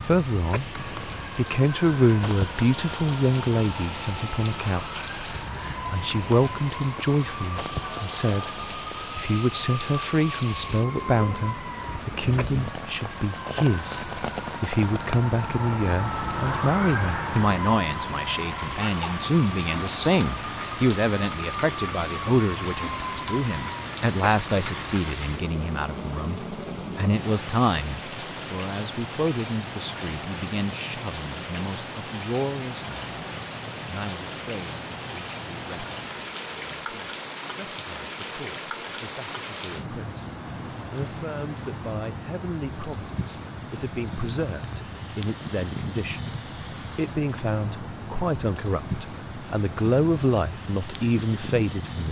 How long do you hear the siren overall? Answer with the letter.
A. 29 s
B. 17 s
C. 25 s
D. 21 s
C.